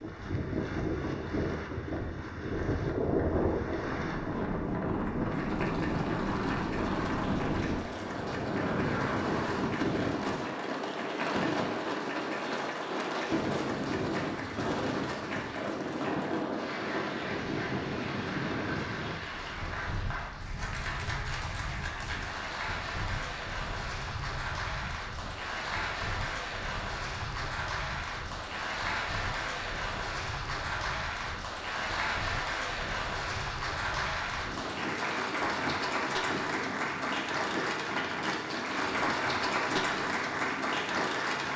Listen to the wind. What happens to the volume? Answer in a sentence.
The volume of the wind goes down, then up.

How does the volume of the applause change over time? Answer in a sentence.
The volume of the applause goes up.